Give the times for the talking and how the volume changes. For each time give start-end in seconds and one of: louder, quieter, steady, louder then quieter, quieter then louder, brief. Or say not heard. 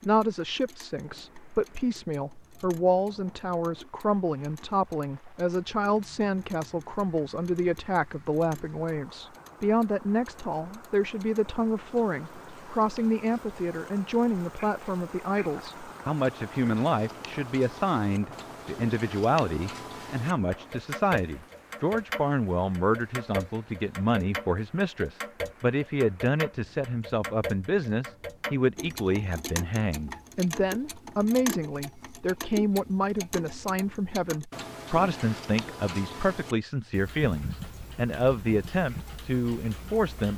0.0-40.3 steady.